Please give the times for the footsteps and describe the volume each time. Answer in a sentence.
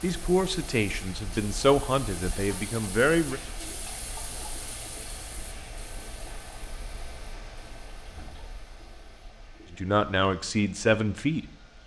The footsteps can't be heard in this clip.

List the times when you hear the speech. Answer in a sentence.
The speech can be heard from 0.0 to 3.4 s and from 9.7 to 11.8 s.